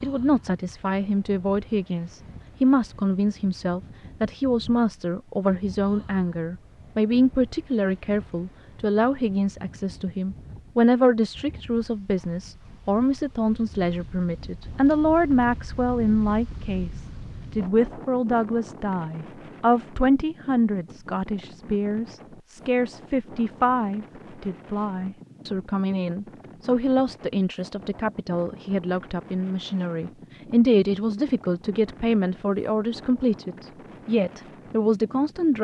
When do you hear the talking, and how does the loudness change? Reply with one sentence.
You can hear the talking from 0.0 to 35.5 s, at a steady volume.